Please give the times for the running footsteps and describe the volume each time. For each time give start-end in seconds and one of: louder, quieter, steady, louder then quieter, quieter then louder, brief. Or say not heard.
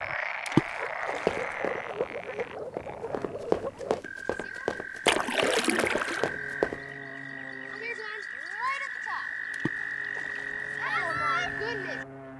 1.1-6.8 louder then quieter.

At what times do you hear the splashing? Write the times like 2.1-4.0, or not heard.
0.5-1.4, 5.0-6.3, 9.5-10.4.